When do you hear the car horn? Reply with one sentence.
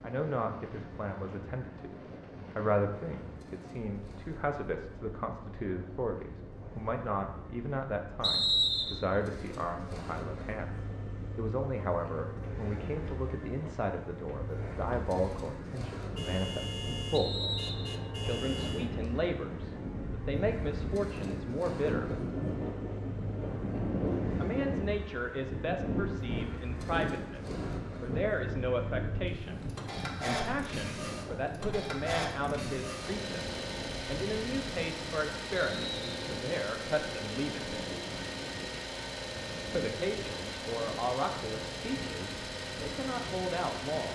You can hear the car horn from 16.1 to 18.9 s.